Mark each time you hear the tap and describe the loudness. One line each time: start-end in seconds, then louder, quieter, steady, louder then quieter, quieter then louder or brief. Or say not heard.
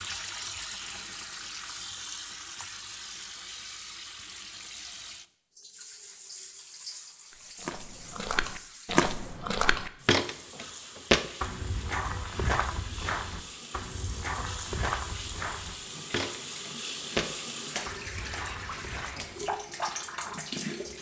0.0-20.9 quieter then louder.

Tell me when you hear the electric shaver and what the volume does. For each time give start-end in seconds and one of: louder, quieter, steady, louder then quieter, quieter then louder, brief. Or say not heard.
not heard.